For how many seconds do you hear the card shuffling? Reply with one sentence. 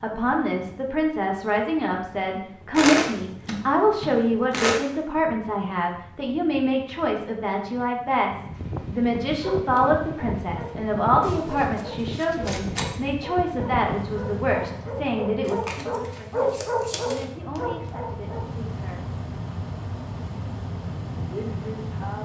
The card shuffling can be heard for 6 seconds in total.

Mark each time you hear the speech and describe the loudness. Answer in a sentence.
You can hear the speech from 0.0 to 19.1 s, getting quieter; and briefly from 21.1 to 22.2 s.